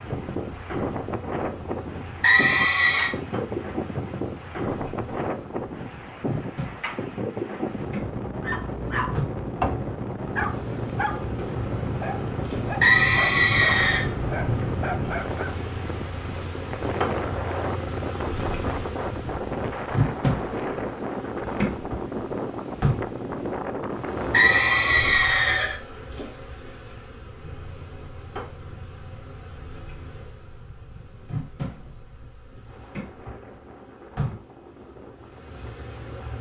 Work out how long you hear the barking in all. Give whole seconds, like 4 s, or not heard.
7 s.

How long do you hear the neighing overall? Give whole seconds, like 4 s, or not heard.
4 s.